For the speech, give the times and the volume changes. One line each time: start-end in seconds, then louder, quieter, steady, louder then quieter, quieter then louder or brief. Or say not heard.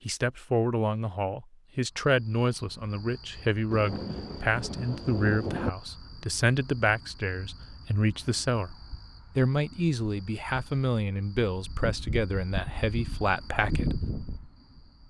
0.1-14.1 steady.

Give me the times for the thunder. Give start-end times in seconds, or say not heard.
3.7-5.7.